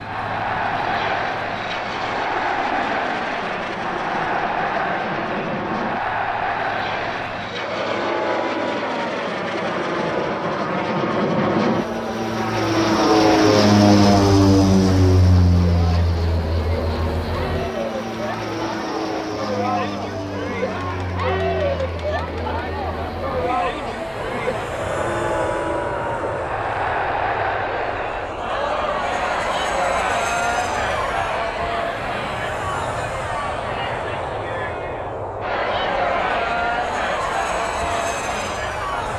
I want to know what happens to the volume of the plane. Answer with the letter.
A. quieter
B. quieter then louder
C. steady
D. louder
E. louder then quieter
E.